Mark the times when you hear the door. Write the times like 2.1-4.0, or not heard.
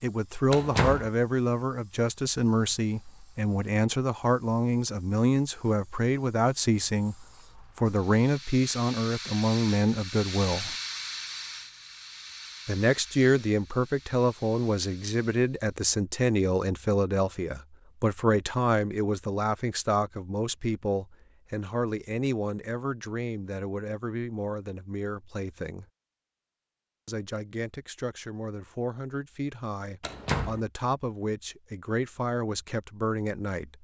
0.5-1.1, 30.0-30.6.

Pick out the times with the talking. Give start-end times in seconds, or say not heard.
0.0-10.8, 12.7-25.9, 27.1-33.7.